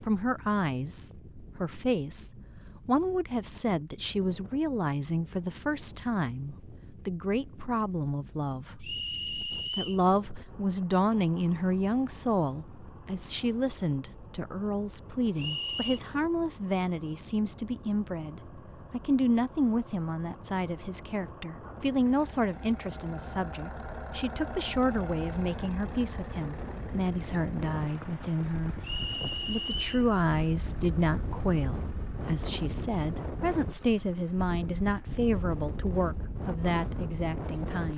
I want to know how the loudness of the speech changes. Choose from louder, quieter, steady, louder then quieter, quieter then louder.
steady.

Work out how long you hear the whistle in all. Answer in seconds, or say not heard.
3 s.